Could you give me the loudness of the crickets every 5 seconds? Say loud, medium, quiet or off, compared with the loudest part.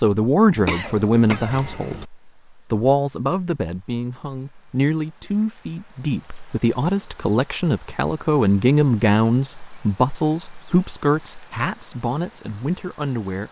quiet, loud, loud.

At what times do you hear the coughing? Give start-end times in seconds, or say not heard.
0.6-2.0.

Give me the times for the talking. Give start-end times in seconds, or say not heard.
0.0-13.4.